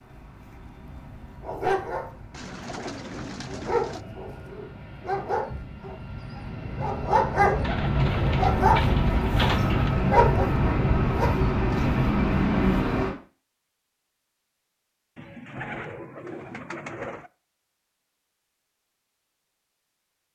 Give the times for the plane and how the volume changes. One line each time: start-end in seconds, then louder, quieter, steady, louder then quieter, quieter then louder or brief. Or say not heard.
0.0-13.2 louder.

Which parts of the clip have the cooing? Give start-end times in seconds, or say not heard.
2.3-4.0, 7.6-9.9, 15.2-17.3.